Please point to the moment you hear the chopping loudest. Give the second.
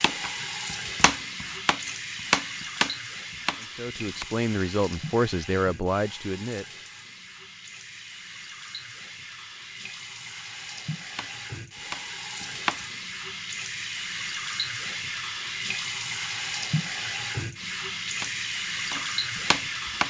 2 s.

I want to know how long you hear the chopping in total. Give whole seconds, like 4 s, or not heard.
8 s.